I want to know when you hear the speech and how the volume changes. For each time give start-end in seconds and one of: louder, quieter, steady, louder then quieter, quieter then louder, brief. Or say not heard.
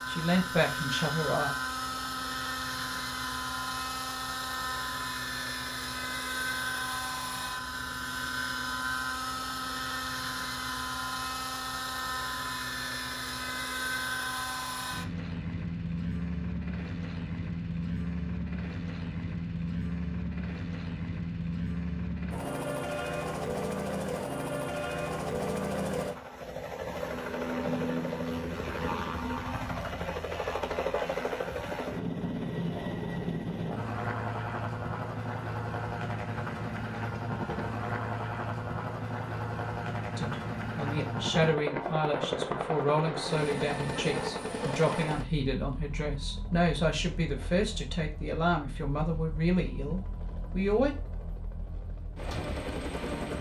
0.1-1.6 brief
40.1-51.0 steady.